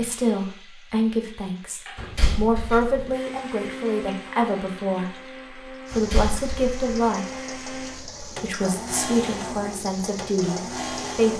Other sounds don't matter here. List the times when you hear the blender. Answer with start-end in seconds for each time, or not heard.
3.1-11.3.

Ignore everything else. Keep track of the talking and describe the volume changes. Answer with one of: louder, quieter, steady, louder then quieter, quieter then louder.
steady.